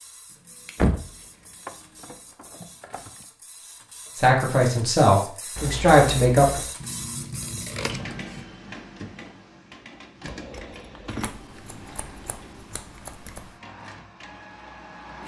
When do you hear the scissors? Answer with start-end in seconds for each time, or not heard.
0.3-2.2, 6.8-8.5, 11.2-13.6.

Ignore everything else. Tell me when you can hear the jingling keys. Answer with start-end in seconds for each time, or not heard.
0.8-3.2, 5.5-6.7, 10.2-11.4.